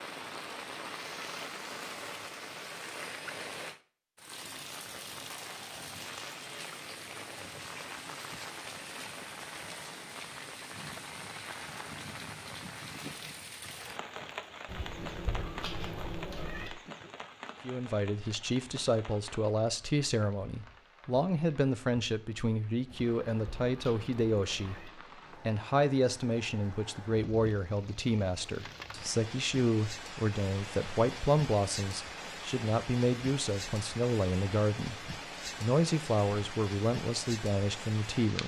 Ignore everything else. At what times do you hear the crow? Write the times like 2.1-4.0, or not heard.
not heard.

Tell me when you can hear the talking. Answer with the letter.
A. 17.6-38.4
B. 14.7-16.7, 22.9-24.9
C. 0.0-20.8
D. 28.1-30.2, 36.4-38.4
A.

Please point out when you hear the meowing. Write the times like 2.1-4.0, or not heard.
14.7-16.7, 22.9-24.9.